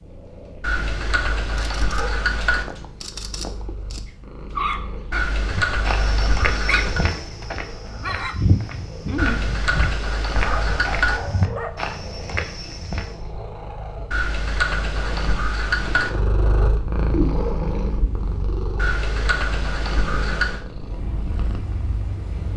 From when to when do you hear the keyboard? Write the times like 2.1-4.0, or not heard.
0.6-2.6, 5.1-7.0, 9.2-11.2, 14.1-16.1, 18.8-20.6.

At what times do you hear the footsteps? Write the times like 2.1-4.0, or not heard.
5.5-13.2.